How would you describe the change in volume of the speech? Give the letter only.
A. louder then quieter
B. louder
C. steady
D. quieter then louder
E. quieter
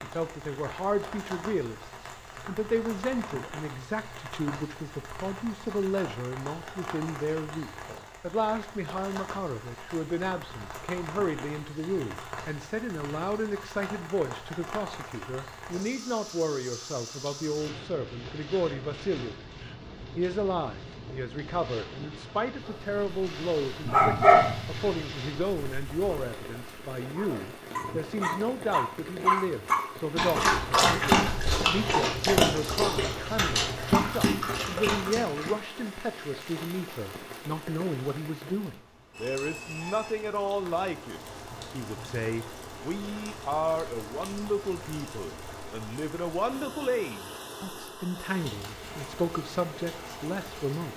C.